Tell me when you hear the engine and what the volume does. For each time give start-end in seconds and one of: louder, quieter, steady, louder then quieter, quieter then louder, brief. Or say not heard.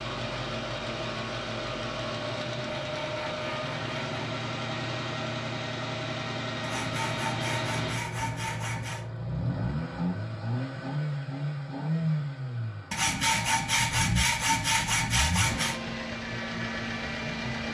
0.0-17.6 steady.